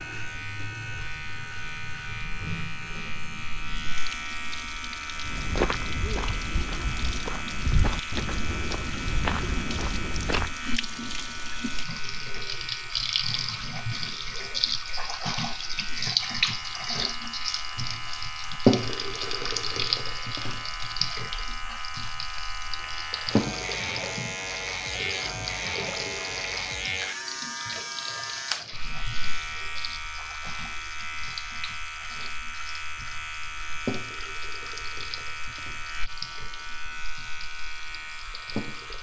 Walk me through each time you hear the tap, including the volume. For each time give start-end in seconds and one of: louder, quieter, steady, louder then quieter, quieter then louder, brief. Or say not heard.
0.0-38.9 louder then quieter.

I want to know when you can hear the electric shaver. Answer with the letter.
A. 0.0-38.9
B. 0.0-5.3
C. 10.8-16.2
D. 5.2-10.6
A.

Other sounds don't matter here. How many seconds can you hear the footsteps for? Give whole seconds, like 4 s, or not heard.
5 s.